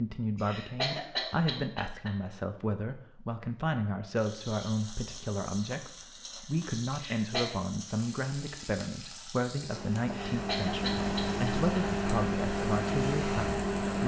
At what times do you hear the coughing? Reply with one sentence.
The coughing can be heard from 0.3 to 2.1 s, from 6.9 to 7.5 s and from 10.1 to 11.6 s.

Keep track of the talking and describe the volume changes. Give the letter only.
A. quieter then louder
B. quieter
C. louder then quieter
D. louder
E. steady
E.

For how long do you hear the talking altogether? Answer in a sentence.
The talking can be heard for 14 seconds in total.